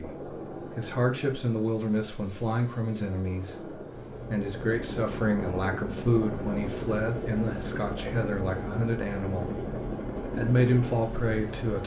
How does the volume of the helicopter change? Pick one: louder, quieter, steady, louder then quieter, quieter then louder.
louder.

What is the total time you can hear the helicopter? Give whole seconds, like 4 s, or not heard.
12 s.